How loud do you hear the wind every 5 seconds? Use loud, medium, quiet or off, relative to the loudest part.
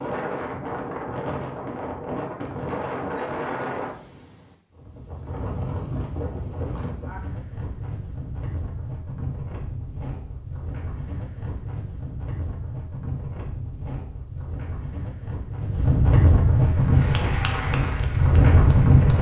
medium, quiet, quiet, loud.